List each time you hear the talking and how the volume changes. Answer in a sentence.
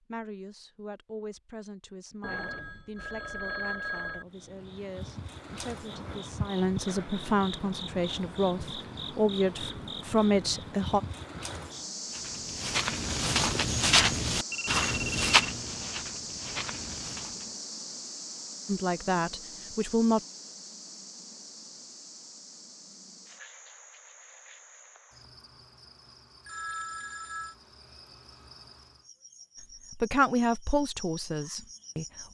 You can hear the talking from 0.0 to 11.0 s, getting louder; briefly from 18.6 to 20.2 s; and briefly from 29.9 to 32.0 s.